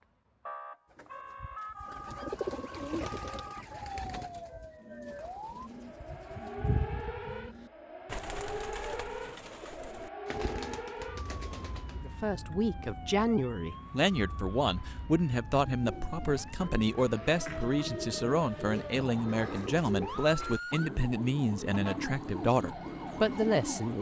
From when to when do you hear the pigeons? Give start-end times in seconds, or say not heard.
0.9-12.2, 15.7-23.9.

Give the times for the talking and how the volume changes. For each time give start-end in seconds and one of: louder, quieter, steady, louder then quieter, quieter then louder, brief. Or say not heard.
11.9-23.9 steady.